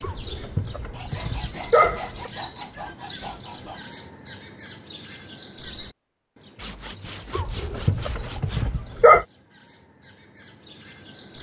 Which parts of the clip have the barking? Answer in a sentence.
The barking can be heard from 0.0 to 2.3 s and from 7.3 to 9.2 s.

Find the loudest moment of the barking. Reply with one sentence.
The volume of the barking peaks at 9 seconds.